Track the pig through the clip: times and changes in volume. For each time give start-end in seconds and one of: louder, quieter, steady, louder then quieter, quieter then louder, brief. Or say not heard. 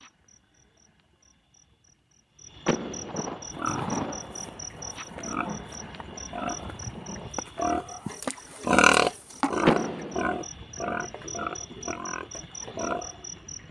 3.5-13.2 louder then quieter.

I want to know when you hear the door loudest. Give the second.
10 s.